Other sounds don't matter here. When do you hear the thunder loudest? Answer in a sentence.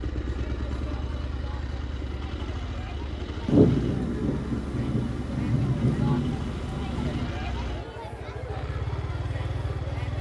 The loudest moment of the thunder is at 4 seconds.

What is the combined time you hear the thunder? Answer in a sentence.
The thunder can be heard for 4 seconds in total.